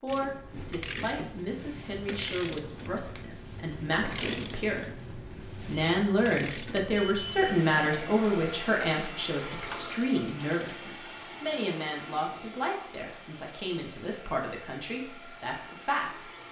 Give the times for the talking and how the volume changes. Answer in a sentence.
The talking can be heard from 0.0 to 16.3 s, getting louder then quieter.